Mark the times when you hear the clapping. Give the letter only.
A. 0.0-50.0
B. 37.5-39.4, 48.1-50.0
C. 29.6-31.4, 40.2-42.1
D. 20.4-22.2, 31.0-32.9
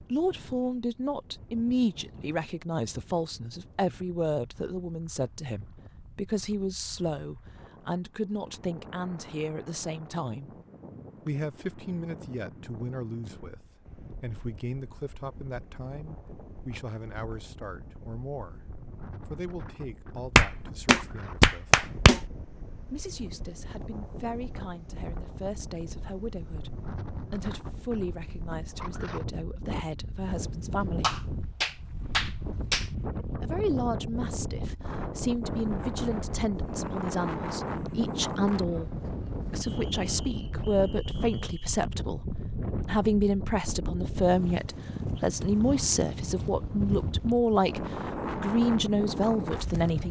D.